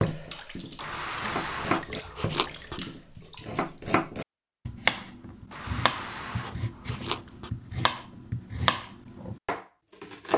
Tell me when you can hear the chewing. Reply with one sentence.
The chewing can be heard from 0.8 to 2.8 s and from 5.5 to 7.5 s.